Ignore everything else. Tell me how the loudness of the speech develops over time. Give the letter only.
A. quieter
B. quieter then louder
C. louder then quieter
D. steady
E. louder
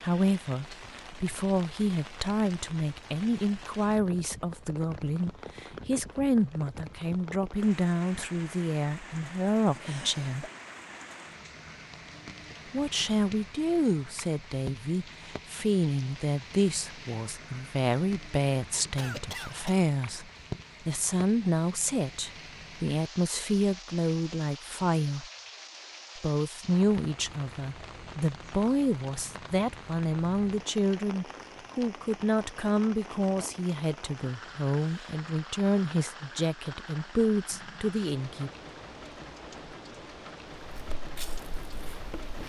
D.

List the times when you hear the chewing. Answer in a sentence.
The chewing can be heard from 40.7 to 42.4 s.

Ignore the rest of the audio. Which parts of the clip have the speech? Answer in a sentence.
The speech can be heard from 0.0 to 10.4 s, from 12.7 to 25.2 s and from 26.1 to 38.5 s.